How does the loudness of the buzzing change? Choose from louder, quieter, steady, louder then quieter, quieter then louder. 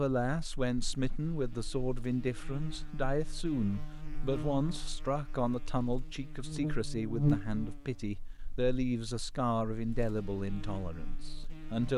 louder then quieter.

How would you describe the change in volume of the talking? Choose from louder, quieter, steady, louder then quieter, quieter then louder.
steady.